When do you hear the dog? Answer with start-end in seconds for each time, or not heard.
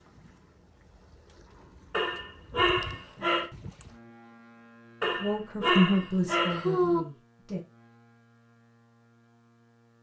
1.9-3.5, 5.0-7.0.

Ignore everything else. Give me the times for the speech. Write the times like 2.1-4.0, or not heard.
5.2-7.6.